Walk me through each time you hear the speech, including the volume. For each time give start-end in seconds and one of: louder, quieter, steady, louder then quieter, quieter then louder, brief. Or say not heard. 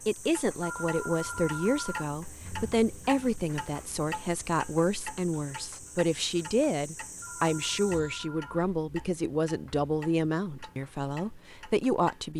0.1-12.3 steady.